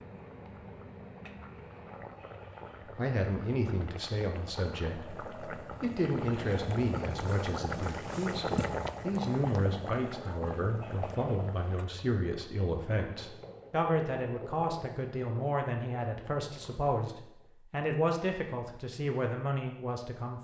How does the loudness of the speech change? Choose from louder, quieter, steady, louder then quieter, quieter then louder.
steady.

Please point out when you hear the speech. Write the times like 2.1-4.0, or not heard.
3.0-20.3.